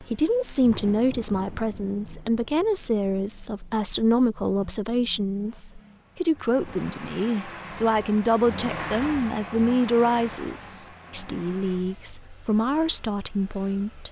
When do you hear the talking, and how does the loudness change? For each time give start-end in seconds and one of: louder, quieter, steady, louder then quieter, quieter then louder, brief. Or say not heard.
0.0-14.0 steady.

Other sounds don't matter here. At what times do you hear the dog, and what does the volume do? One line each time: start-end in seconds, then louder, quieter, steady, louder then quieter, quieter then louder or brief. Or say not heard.
not heard.